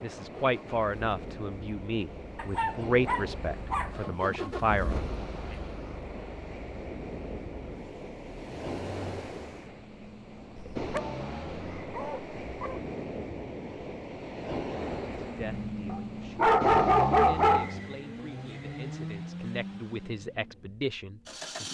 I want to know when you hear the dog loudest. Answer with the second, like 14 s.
17 s.